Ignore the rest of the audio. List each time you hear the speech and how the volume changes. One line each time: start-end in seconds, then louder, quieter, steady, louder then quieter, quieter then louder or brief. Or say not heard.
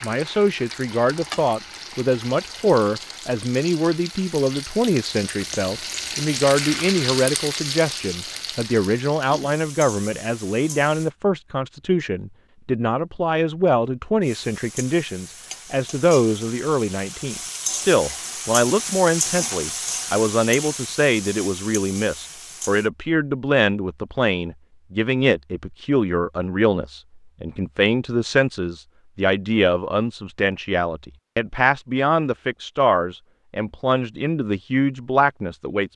0.0-35.9 steady.